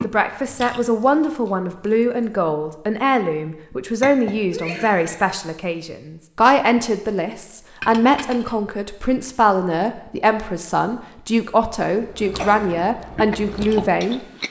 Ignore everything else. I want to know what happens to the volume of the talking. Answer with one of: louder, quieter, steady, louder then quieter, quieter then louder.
steady.